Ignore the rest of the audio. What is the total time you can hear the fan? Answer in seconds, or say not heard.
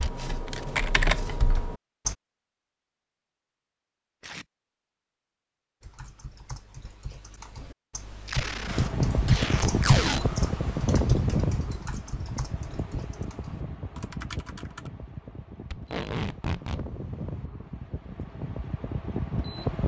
11 s.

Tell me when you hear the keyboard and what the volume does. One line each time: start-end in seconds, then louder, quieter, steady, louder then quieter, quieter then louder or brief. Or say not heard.
0.0-2.1 brief
5.8-14.9 louder then quieter.